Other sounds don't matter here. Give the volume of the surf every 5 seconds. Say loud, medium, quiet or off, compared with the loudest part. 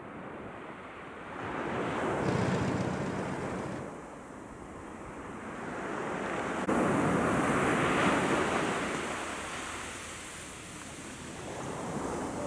medium, loud, medium.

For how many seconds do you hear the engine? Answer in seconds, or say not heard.
2 s.